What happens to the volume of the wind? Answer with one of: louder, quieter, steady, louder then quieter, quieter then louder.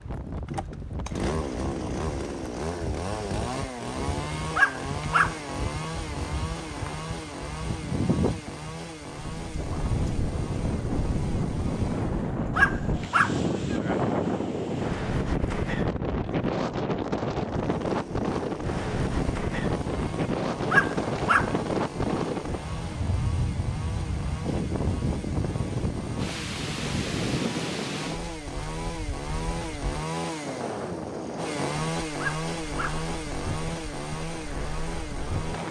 louder then quieter.